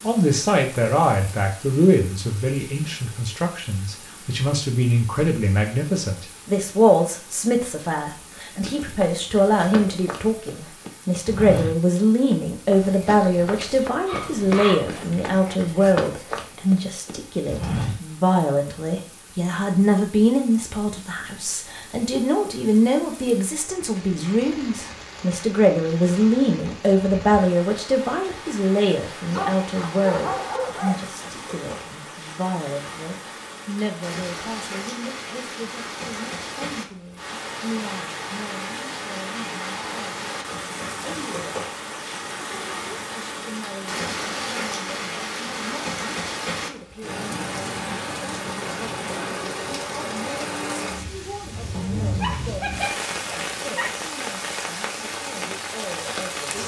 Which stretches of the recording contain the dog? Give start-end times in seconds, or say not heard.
13.6-15.6, 29.3-31.0, 52.1-54.0.